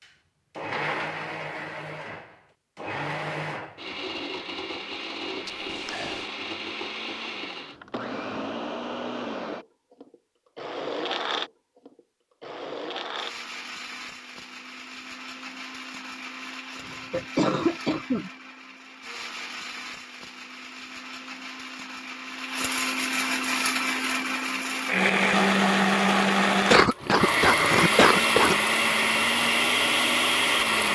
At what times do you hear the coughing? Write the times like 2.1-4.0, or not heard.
5.5-6.2, 16.8-18.3, 26.7-28.6.